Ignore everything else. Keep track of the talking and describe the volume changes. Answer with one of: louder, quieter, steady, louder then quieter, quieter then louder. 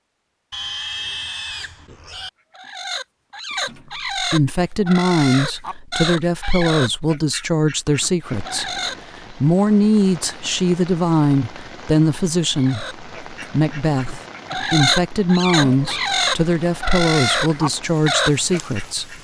steady.